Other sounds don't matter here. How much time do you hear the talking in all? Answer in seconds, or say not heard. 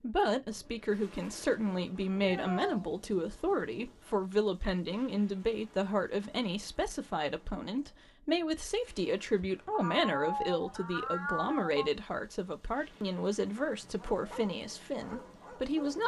16 s.